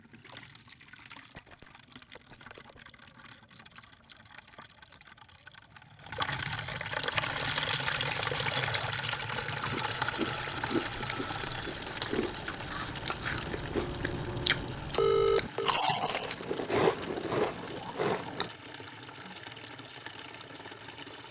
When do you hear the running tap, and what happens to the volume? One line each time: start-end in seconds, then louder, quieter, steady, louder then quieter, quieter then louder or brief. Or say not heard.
0.0-21.2 louder then quieter.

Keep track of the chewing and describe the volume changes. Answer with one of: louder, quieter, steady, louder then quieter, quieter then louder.
louder.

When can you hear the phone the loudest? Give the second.
15 s.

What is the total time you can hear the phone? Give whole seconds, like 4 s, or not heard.
5 s.